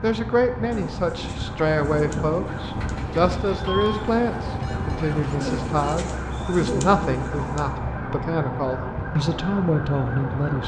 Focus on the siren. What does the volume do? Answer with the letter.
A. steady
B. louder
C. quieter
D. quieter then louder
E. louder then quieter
A.